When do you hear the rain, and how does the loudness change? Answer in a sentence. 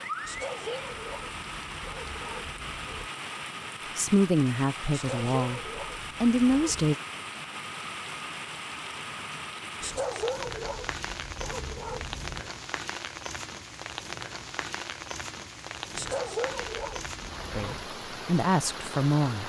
The rain can be heard from 0.0 to 19.4 s, at a steady volume.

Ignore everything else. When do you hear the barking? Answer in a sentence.
You can hear the barking from 0.2 to 3.1 s, from 4.9 to 6.9 s, from 9.8 to 12.5 s and from 15.9 to 17.9 s.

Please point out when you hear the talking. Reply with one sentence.
The talking can be heard from 4.0 to 5.6 s, from 6.2 to 7.0 s and from 17.6 to 19.4 s.